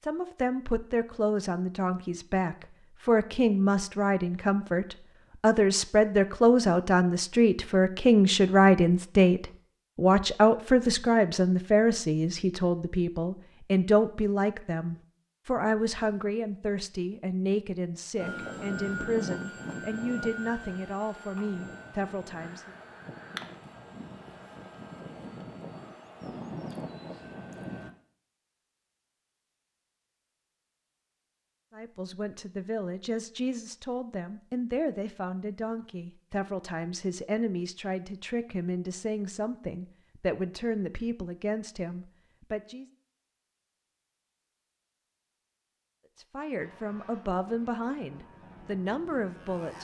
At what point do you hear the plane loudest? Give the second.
19 s.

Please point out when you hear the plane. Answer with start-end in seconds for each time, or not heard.
18.1-27.9, 46.5-49.8.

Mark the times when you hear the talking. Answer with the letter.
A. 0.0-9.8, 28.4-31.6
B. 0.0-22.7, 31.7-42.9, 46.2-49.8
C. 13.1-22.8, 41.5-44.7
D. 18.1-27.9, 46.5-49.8
B.